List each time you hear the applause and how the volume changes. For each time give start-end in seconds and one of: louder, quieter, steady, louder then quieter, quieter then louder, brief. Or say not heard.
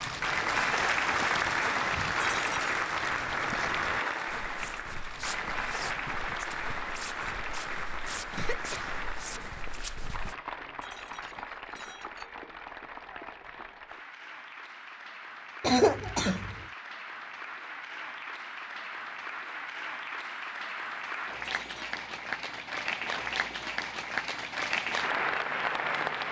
0.0-26.2 quieter then louder.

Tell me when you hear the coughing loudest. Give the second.
16 s.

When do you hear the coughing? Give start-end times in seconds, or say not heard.
8.3-9.4, 15.6-16.6.